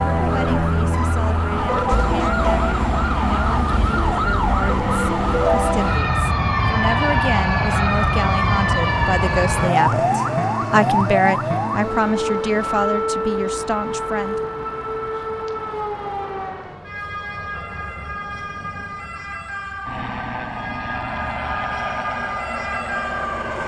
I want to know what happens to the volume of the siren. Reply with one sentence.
The loudness of the siren goes down.